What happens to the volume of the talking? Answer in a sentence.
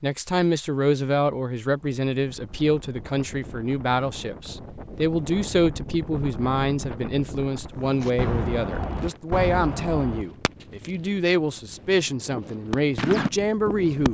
The loudness of the talking stays about the same.